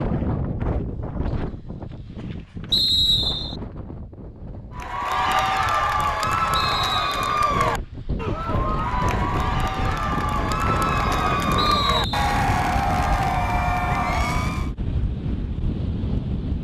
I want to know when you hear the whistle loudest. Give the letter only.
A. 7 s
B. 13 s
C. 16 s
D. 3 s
D.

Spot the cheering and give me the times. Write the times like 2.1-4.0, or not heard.
4.8-14.7.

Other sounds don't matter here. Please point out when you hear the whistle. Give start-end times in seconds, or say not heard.
2.7-3.5, 6.5-7.3, 11.6-12.4.